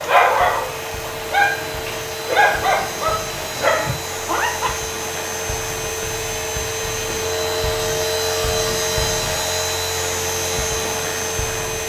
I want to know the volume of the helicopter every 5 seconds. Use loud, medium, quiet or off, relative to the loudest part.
medium, loud, loud.